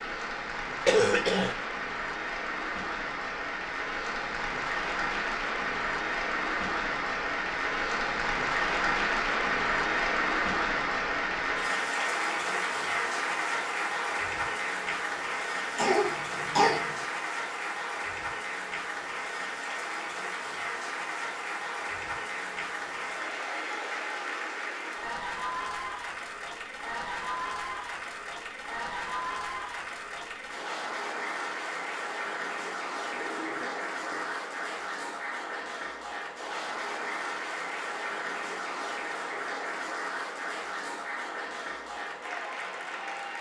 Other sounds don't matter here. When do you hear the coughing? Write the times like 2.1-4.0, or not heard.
0.8-1.6, 15.8-16.9, 33.1-34.5.